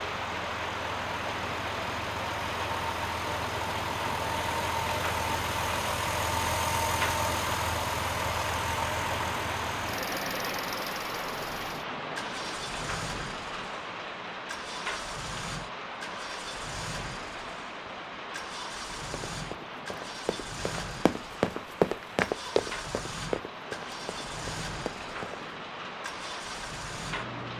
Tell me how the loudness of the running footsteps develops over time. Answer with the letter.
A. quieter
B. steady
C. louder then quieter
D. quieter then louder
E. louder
C.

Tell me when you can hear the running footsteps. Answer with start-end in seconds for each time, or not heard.
19.3-25.4.